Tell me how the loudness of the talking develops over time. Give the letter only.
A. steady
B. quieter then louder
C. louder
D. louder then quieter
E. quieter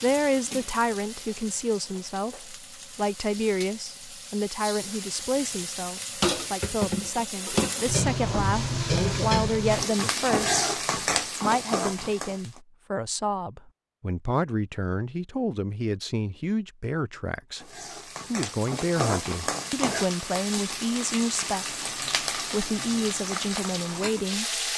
A.